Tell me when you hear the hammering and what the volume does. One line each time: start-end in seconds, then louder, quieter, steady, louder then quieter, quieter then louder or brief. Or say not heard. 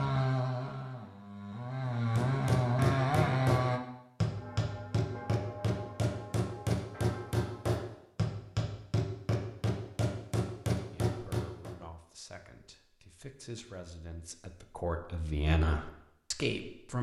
1.9-11.8 steady.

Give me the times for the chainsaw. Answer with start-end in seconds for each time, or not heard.
0.0-3.8.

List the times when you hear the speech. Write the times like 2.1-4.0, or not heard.
10.9-16.9.